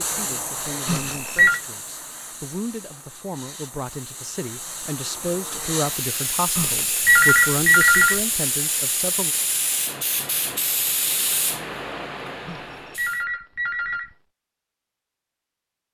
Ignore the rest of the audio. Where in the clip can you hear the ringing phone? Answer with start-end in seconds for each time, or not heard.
0.8-1.6, 6.5-8.2, 12.4-14.2.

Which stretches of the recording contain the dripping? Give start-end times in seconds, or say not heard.
not heard.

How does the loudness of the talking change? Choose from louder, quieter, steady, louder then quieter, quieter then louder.
louder.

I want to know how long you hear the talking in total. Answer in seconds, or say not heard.
9 s.